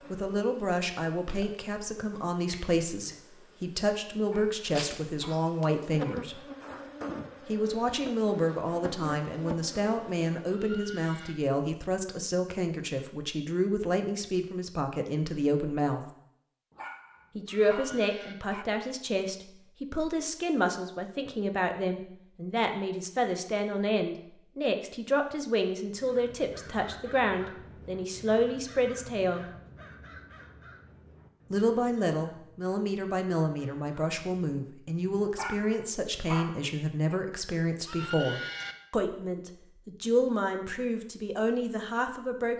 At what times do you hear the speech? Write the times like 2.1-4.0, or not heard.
0.1-6.4, 7.5-16.1, 17.4-29.5, 31.5-42.5.